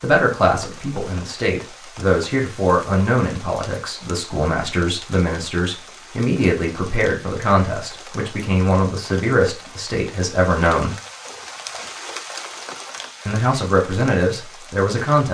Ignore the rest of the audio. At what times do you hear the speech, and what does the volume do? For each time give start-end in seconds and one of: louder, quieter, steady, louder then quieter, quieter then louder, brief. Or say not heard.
0.0-10.9 steady
13.2-15.3 brief.